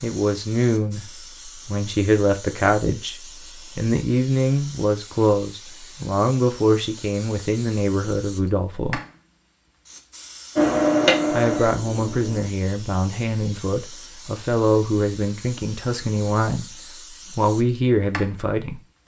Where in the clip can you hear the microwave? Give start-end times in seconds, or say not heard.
10.6-12.5.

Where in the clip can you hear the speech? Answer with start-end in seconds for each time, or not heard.
0.0-9.0, 11.3-18.8.